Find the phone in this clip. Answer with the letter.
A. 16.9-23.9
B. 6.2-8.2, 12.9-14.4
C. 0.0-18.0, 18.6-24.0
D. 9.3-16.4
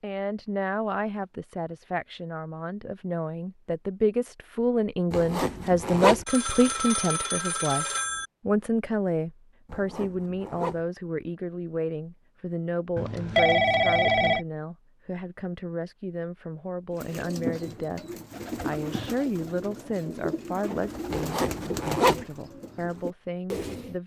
B.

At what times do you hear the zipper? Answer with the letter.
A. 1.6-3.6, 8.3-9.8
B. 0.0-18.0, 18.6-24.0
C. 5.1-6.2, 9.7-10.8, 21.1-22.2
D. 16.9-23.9
C.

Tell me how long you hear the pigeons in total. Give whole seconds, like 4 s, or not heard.
7 s.